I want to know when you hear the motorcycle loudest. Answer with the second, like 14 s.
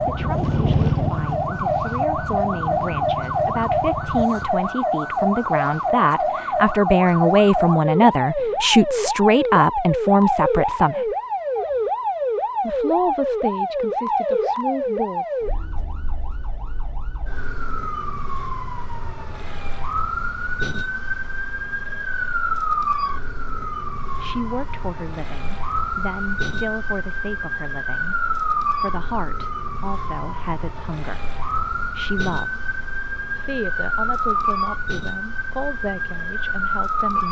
1 s.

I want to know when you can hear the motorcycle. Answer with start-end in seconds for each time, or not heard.
0.0-4.3.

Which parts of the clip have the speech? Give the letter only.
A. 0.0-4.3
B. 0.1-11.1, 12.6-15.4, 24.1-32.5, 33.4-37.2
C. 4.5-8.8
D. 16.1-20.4
B.